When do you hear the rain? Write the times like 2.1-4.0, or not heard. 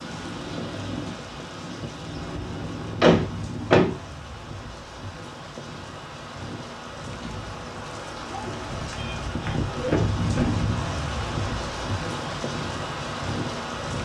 0.0-13.9.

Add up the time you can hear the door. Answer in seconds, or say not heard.
2 s.